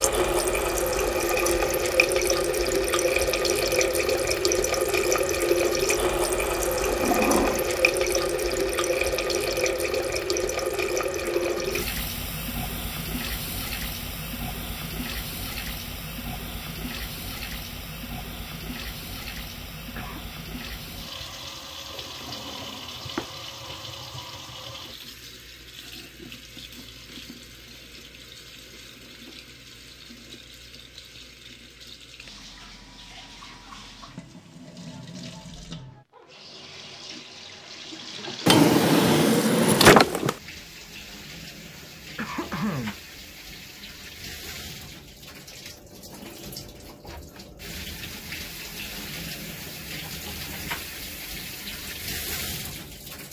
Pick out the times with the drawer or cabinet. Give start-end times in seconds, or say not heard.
6.8-7.6, 22.2-23.3, 38.5-40.4.